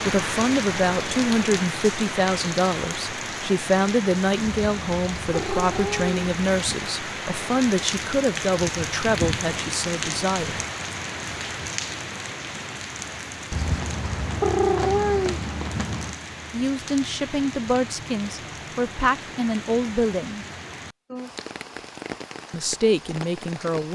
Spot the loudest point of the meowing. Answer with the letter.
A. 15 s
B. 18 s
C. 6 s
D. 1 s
A.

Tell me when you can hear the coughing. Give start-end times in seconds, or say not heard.
not heard.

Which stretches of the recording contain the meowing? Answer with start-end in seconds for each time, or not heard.
4.5-6.9, 13.5-16.1.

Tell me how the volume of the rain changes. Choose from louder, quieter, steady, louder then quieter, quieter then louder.
quieter.